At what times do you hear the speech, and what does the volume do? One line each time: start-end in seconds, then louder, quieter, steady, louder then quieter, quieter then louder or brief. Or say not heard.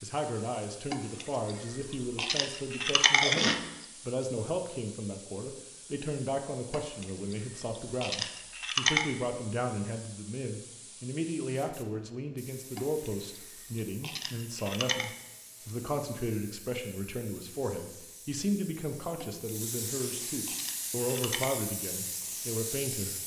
0.0-23.2 steady.